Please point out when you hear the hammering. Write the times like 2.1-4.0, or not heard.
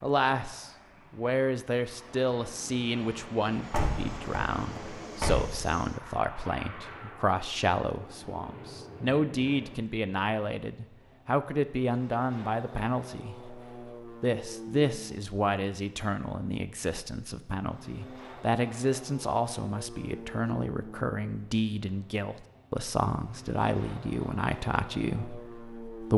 not heard.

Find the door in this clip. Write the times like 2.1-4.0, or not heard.
3.7-5.5.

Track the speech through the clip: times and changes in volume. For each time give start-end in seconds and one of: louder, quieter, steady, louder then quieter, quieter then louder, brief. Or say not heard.
0.0-26.1 steady.